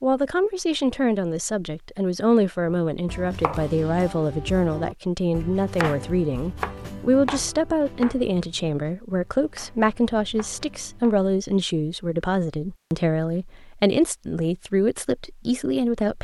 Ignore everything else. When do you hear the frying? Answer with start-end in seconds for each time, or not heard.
not heard.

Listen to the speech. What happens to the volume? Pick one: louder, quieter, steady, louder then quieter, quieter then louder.
steady.